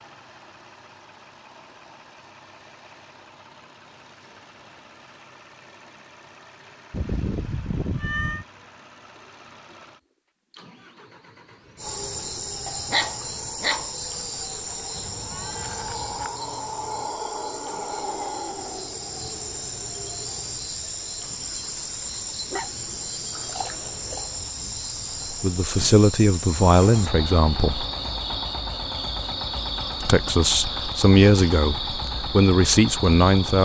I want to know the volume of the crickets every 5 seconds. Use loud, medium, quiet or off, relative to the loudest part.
off, off, loud, loud, loud, loud, loud.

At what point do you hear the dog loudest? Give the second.
13 s.